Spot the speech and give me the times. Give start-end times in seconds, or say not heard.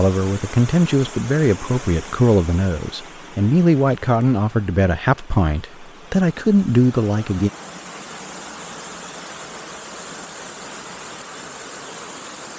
0.0-7.5.